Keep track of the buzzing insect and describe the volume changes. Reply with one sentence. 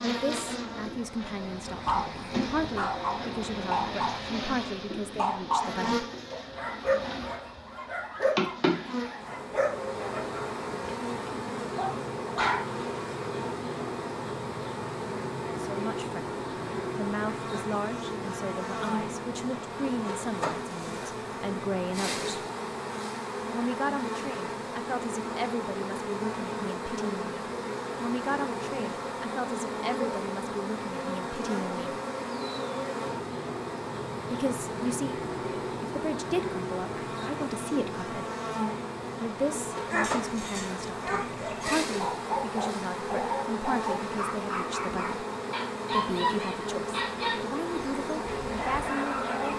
The loudness of the buzzing insect stays about the same.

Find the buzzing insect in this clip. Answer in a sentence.
The buzzing insect can be heard from 0.0 to 49.5 s.